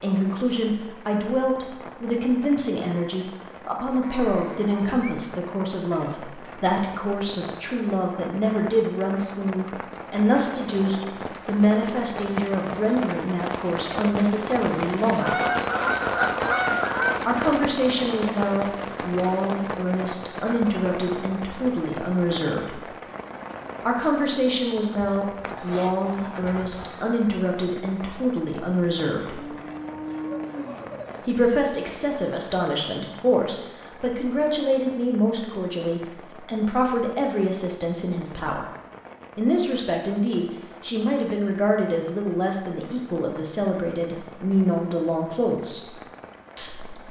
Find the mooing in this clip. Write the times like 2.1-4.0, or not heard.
4.0-5.3, 29.3-31.3.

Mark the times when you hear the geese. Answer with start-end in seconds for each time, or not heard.
15.2-17.2, 25.0-27.1.